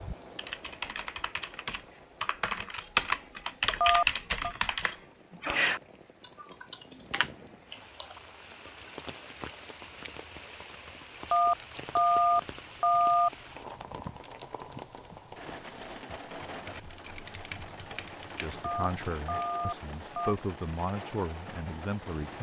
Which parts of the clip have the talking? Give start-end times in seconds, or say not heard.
18.4-22.3.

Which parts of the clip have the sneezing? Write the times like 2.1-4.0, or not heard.
not heard.